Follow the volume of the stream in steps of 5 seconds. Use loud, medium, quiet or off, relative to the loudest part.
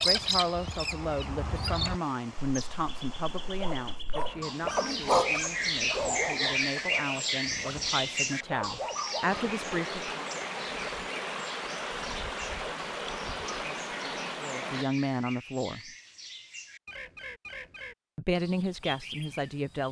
quiet, medium, loud, off.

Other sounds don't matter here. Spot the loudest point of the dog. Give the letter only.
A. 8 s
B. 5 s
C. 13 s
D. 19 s
B.